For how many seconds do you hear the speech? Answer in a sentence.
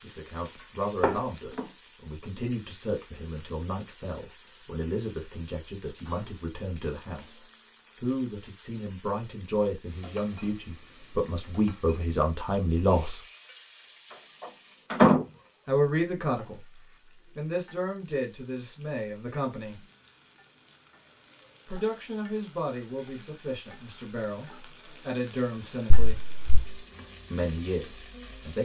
You can hear the speech for 22 seconds altogether.